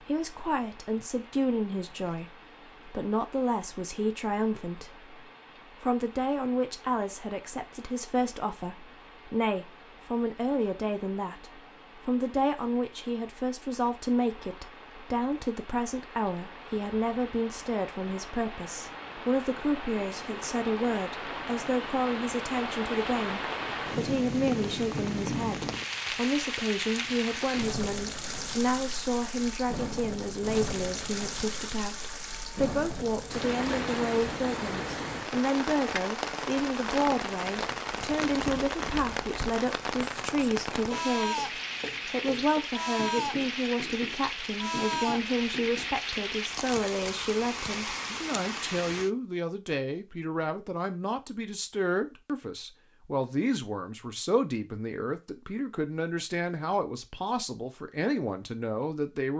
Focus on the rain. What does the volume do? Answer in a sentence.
The loudness of the rain goes up.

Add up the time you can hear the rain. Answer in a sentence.
The rain can be heard for 49 seconds in total.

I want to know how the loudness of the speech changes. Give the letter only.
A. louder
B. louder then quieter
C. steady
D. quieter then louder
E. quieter
C.